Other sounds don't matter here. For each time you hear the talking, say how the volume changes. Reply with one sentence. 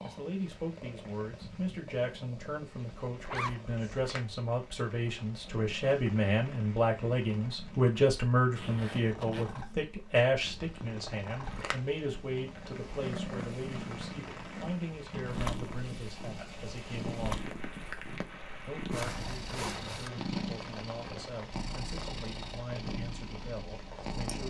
You can hear the talking from 0.0 to 17.5 s, getting louder then quieter; and from 18.6 to 24.4 s, at a steady volume.